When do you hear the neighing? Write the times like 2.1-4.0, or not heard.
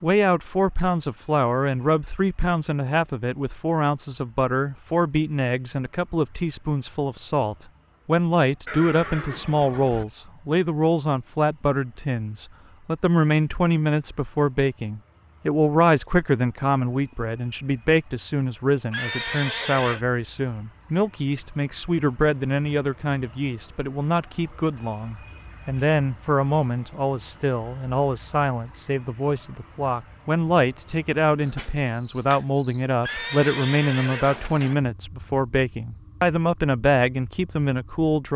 8.7-10.1, 18.9-20.1, 33.0-34.8.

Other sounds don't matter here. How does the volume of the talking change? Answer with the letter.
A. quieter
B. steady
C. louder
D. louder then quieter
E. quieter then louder
B.